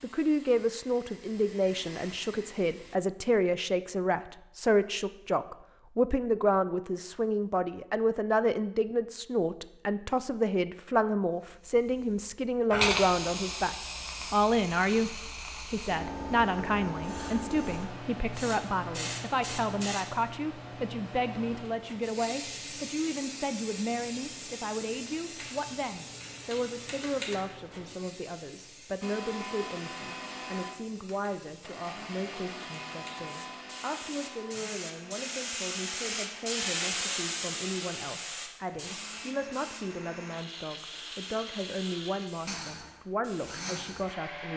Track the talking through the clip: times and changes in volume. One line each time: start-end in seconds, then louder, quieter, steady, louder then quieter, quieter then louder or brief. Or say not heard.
0.0-44.5 quieter.